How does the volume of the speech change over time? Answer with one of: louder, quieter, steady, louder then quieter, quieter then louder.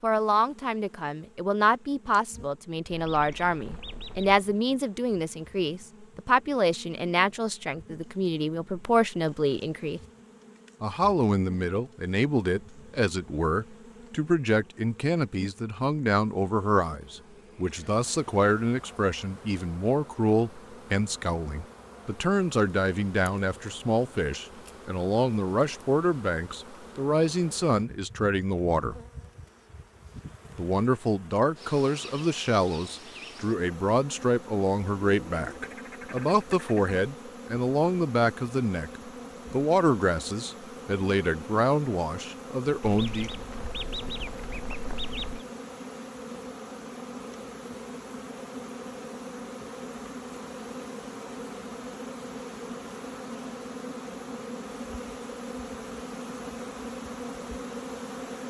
steady.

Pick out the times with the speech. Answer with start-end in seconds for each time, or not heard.
0.0-10.0, 10.8-29.0, 30.6-43.3.